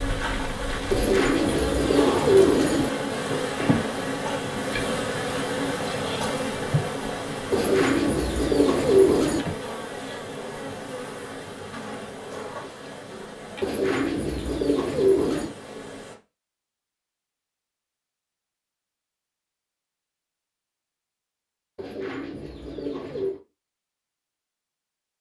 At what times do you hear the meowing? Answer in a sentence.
You can't hear the meowing here.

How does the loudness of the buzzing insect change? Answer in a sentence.
The volume of the buzzing insect goes down.